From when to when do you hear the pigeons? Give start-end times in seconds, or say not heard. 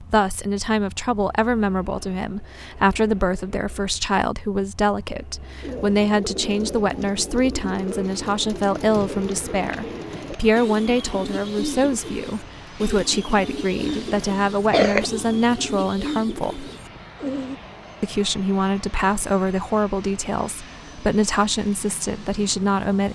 5.6-17.6.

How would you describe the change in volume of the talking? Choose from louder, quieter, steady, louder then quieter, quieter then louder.
steady.